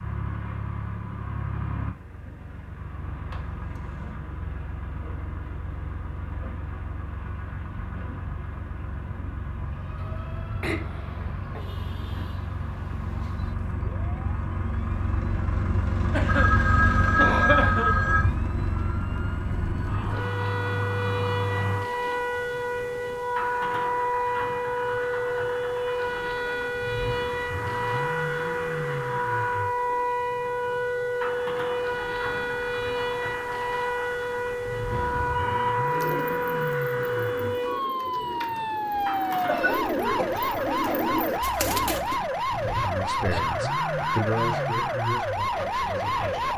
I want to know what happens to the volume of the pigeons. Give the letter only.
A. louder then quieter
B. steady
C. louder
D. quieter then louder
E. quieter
C.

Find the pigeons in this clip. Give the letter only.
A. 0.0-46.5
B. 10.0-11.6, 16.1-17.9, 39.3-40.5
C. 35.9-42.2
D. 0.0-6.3
C.